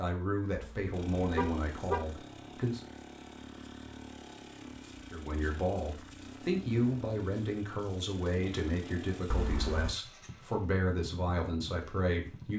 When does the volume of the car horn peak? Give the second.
2 s.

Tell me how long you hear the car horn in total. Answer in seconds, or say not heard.
2 s.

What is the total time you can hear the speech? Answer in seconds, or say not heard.
10 s.